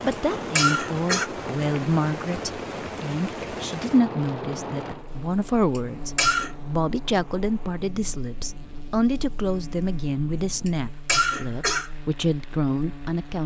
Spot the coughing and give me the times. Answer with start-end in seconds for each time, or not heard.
0.1-1.3, 5.8-6.5, 10.7-11.9.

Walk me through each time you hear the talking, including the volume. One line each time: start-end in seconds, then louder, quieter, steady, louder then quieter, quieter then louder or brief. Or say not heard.
0.0-13.4 steady.